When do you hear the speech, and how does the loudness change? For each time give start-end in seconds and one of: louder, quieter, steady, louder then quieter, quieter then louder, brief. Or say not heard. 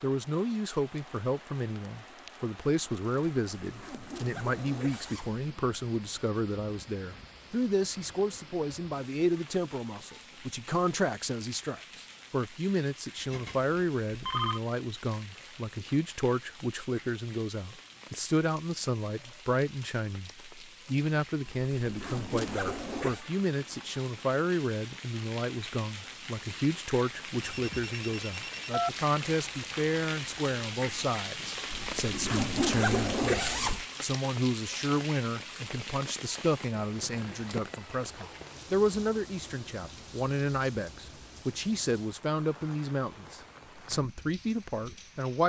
0.0-45.4 steady.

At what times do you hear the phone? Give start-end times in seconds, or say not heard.
13.2-14.6, 27.4-28.9.